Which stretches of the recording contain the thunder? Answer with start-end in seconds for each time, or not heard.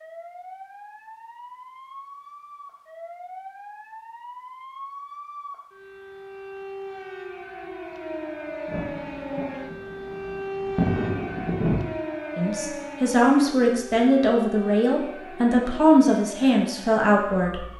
8.7-11.8.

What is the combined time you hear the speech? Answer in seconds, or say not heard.
5 s.